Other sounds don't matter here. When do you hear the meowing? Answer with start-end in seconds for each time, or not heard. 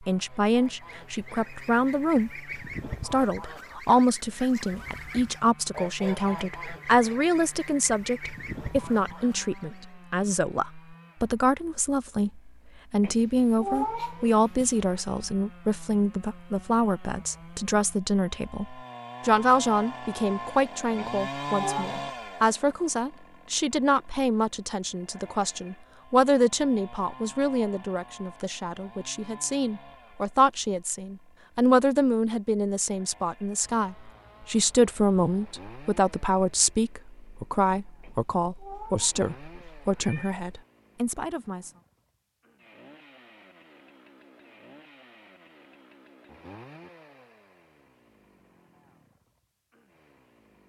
13.0-15.0, 20.9-21.9, 38.0-40.4.